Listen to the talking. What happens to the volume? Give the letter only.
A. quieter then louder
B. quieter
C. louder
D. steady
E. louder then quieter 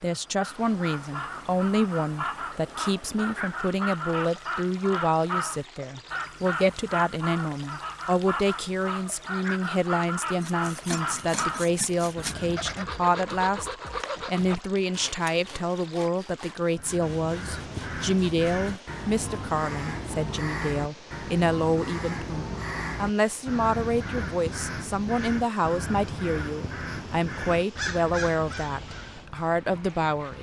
D.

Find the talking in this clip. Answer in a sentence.
You can hear the talking from 0.0 to 30.3 s.